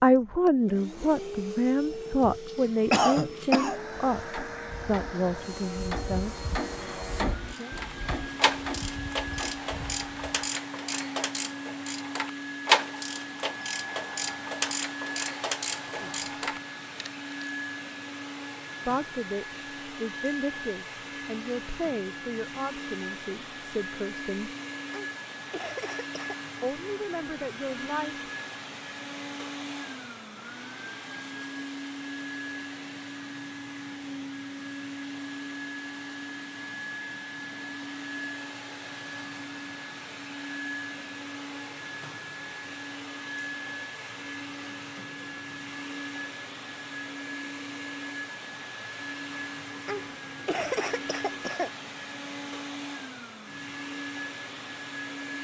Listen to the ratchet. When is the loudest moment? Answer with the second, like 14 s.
13 s.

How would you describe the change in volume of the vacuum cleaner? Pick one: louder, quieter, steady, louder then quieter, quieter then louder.
steady.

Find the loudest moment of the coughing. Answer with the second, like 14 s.
3 s.